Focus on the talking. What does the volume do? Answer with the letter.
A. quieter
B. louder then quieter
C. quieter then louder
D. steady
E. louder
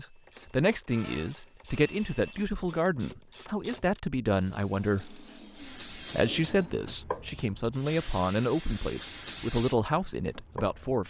D.